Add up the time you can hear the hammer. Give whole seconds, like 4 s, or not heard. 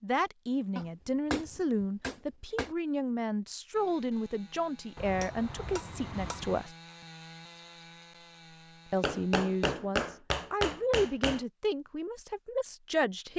6 s.